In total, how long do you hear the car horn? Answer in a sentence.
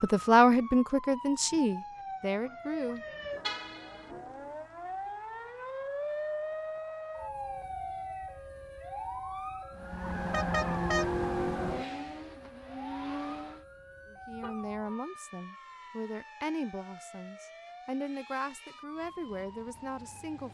The car horn can be heard for 2 seconds in total.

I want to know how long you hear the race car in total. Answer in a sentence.
You can hear the race car for 4 seconds altogether.